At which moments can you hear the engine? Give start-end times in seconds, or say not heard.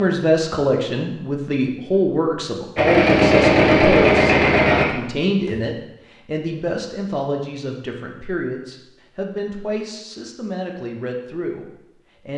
2.8-4.8.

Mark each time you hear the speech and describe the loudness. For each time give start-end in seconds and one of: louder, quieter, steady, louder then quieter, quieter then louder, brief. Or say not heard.
0.0-12.3 quieter.